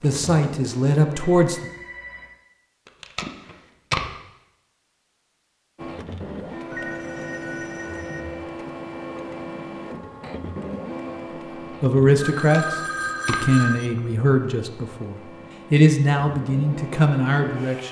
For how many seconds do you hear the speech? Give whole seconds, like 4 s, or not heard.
8 s.